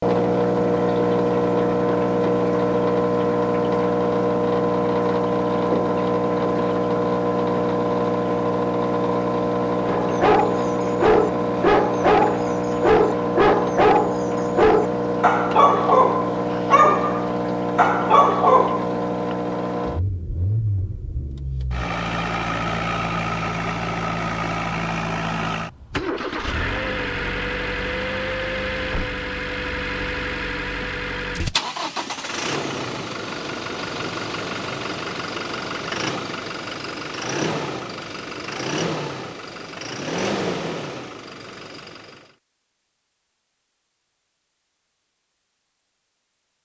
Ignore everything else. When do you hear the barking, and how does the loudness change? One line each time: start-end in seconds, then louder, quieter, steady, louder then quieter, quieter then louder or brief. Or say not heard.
9.8-18.9 steady.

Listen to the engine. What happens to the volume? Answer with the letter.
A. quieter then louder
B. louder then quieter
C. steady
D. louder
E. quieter
E.